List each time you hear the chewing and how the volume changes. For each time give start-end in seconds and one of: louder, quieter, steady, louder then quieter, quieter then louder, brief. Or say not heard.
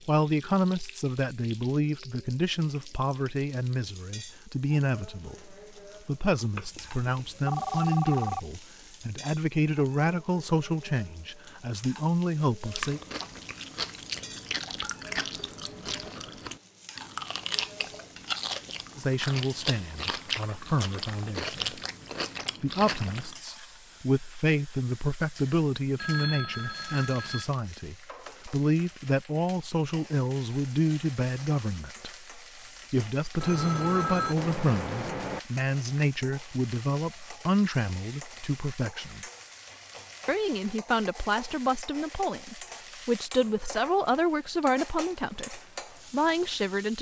12.7-23.4 steady.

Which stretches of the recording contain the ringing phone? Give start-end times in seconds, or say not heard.
6.5-8.4, 25.9-27.4, 33.4-35.4.